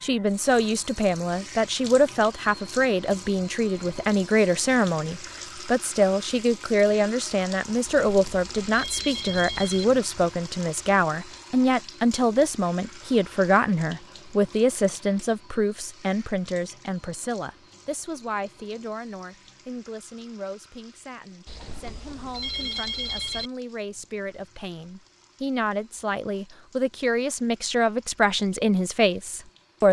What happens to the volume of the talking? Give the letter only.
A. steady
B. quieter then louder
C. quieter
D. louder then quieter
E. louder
B.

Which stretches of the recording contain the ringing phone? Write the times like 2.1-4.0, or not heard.
7.8-9.8, 21.4-23.5.